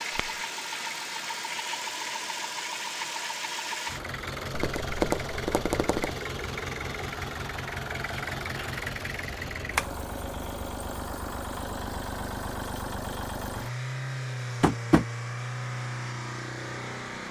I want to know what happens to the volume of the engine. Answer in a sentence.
The volume of the engine stays about the same.